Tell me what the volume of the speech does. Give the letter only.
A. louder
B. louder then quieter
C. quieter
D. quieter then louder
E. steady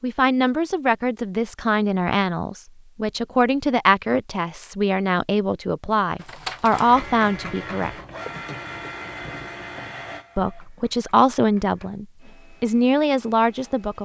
E.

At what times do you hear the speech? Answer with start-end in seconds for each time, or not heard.
0.0-7.9, 10.3-14.0.